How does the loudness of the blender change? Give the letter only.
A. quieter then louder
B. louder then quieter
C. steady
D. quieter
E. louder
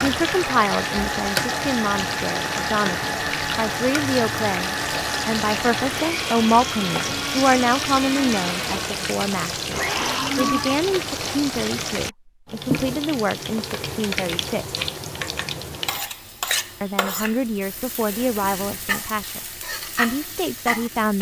C.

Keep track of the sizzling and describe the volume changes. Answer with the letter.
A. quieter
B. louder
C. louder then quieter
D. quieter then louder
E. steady
E.